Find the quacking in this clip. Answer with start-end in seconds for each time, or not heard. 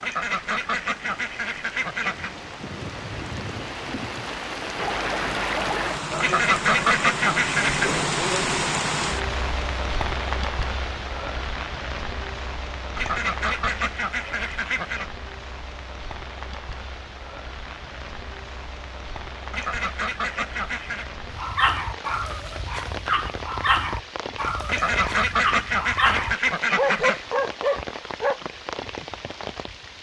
0.0-2.3, 6.2-8.0, 12.9-15.1, 19.5-21.1, 24.6-27.2.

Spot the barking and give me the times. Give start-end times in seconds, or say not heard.
21.2-28.4.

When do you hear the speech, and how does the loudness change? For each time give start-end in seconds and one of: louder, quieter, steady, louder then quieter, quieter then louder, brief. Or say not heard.
not heard.